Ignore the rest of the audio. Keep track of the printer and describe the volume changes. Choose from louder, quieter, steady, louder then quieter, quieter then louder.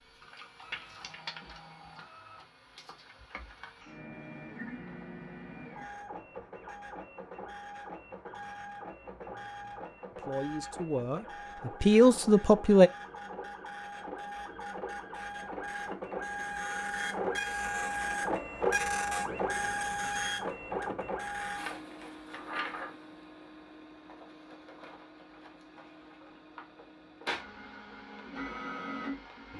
louder then quieter.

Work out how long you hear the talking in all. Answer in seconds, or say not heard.
3 s.